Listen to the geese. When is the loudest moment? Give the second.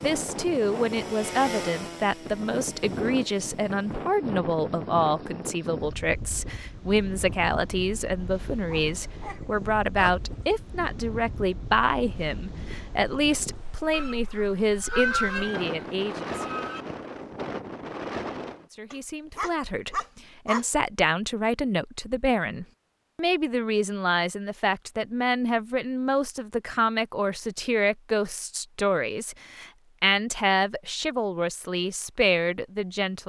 15 s.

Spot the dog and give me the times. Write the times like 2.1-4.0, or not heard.
8.7-10.4, 18.9-20.6.